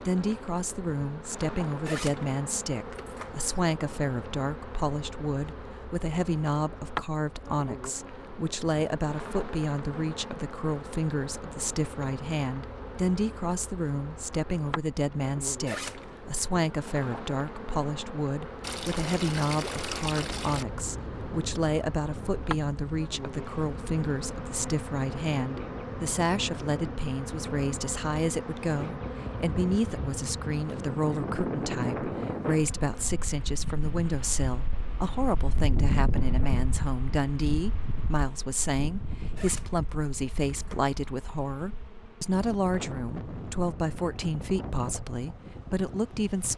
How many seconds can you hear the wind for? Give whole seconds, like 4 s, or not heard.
26 s.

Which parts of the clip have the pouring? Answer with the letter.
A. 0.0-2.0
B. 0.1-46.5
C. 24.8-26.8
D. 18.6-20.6
D.